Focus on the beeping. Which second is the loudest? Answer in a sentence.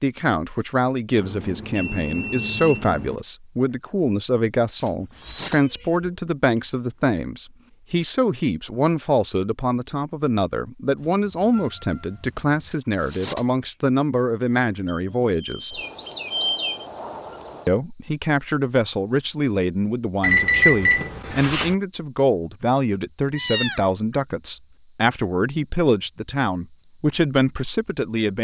The loudest moment of the beeping is at 21 seconds.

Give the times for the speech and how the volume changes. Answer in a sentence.
The speech can be heard from 0.0 to 15.8 s, at a steady volume; and from 17.6 to 28.3 s, at a steady volume.